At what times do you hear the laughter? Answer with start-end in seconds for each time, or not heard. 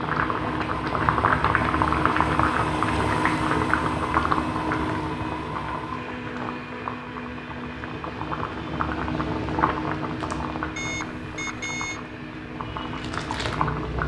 not heard.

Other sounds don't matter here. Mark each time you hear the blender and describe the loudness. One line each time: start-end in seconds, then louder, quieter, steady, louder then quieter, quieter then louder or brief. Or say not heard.
0.2-13.9 quieter.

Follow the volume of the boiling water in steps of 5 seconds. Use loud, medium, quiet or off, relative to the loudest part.
loud, medium, medium.